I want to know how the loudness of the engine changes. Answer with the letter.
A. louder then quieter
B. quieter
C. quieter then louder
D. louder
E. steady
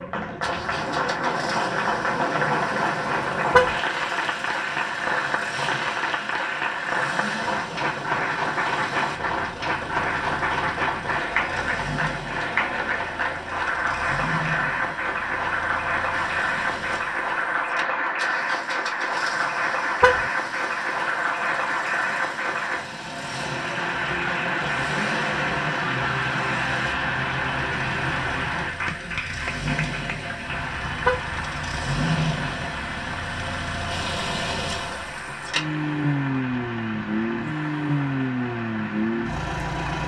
D.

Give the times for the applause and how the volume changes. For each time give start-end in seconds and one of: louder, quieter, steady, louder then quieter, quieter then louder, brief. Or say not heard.
0.0-40.0 quieter.